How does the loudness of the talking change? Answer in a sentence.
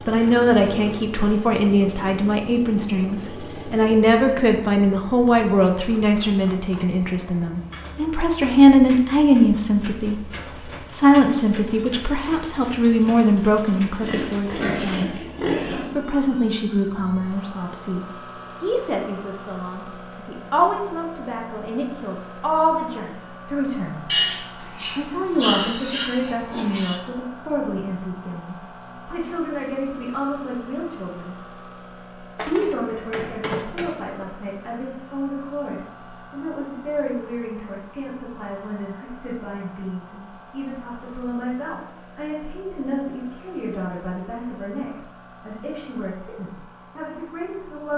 The volume of the talking goes down.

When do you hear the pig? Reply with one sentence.
The pig can be heard from 14.0 to 15.9 s and from 24.1 to 27.0 s.